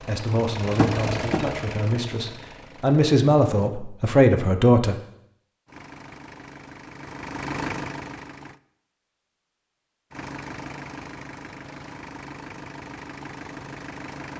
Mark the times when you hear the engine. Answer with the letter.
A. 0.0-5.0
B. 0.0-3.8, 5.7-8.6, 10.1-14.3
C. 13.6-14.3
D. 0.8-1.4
B.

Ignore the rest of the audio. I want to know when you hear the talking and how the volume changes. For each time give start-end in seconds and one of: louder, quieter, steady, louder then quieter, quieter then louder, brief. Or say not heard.
0.0-5.0 louder.